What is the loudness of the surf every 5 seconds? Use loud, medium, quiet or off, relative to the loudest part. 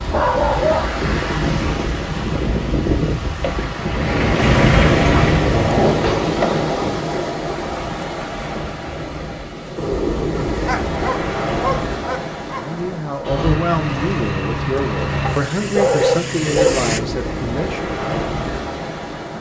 loud, loud, loud, medium.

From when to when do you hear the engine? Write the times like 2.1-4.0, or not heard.
3.4-5.4, 13.2-17.0.